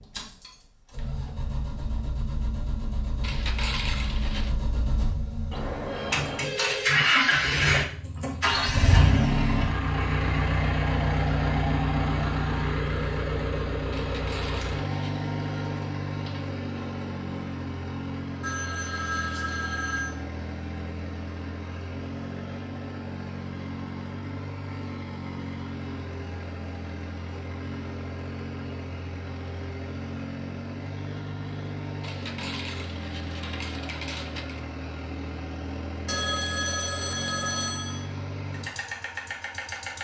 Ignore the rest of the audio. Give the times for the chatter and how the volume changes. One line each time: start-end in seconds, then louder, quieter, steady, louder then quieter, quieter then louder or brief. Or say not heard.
not heard.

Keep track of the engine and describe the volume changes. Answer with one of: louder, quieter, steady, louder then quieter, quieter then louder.
quieter.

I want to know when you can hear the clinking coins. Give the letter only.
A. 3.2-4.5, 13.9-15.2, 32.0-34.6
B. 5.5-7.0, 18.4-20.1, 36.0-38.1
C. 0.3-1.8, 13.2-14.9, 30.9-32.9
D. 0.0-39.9
A.